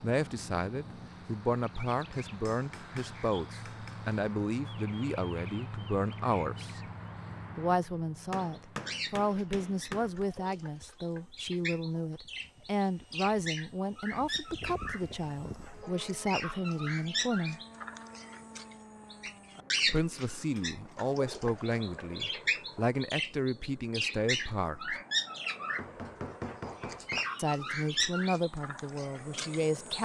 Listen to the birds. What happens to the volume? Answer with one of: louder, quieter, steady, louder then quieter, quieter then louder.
louder.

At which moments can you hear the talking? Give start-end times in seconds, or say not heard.
0.0-6.8, 7.5-17.6, 19.9-25.0, 27.4-30.0.